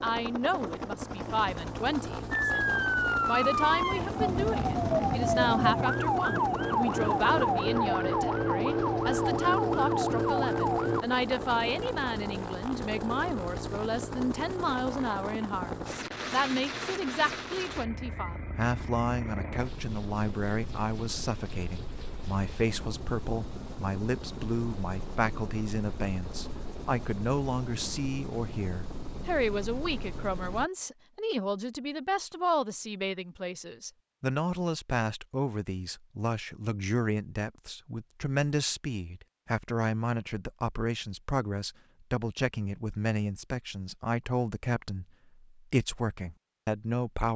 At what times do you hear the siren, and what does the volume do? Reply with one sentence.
The siren can be heard from 2.3 to 11.1 s, at a steady volume.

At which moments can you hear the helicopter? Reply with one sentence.
You can hear the helicopter from 0.0 to 30.7 s.